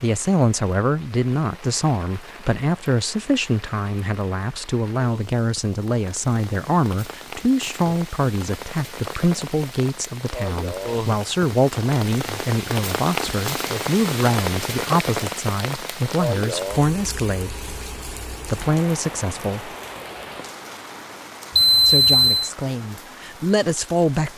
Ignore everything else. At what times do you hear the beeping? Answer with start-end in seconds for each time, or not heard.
21.6-22.5.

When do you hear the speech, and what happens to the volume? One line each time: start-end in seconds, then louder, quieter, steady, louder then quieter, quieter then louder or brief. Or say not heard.
0.0-17.6 steady
18.4-19.7 brief
21.9-24.3 brief.